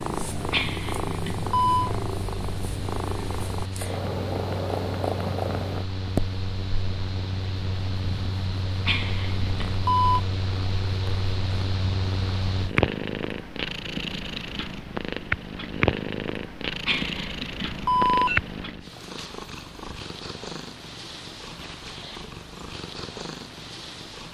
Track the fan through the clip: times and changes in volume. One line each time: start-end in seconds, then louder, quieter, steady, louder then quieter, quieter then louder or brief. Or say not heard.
0.0-12.8 louder.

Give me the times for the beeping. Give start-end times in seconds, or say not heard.
0.5-1.9, 8.8-10.2, 16.9-18.4.